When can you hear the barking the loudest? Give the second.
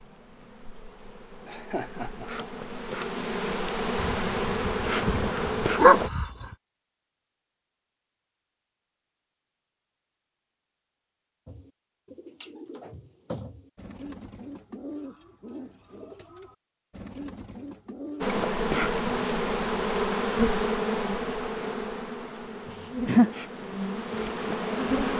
6 s.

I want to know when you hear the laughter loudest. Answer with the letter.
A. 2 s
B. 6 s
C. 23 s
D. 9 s
C.